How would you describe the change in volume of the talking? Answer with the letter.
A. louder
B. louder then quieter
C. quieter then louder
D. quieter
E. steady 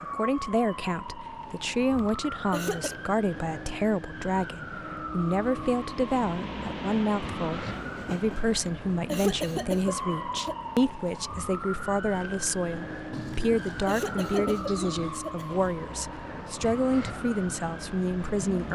E.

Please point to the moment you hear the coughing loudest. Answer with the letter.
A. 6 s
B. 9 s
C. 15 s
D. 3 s
B.